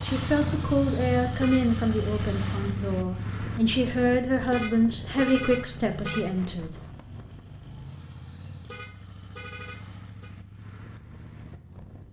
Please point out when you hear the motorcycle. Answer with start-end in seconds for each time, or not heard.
0.0-12.0.